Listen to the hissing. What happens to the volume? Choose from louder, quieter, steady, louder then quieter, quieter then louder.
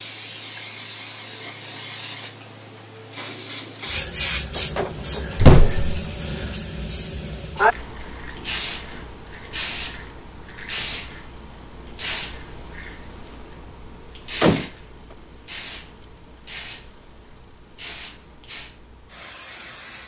quieter.